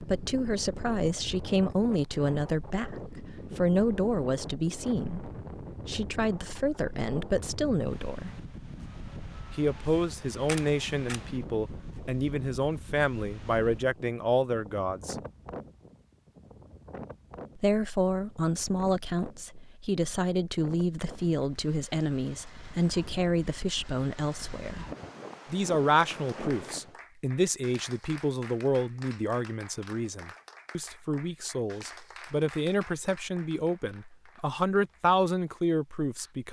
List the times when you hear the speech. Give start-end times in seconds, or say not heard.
0.0-8.3, 9.6-15.2, 17.6-24.9, 25.5-36.4.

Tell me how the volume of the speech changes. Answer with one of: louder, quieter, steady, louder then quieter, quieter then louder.
steady.